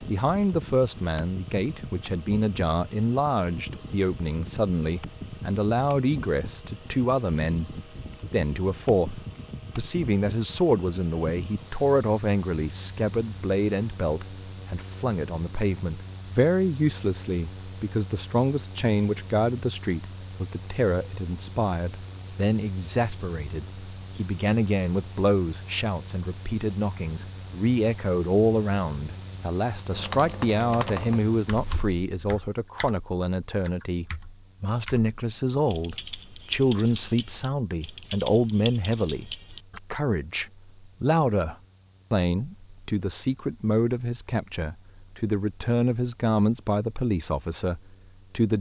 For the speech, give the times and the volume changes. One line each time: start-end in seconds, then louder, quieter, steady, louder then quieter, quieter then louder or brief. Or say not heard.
0.0-48.5 steady.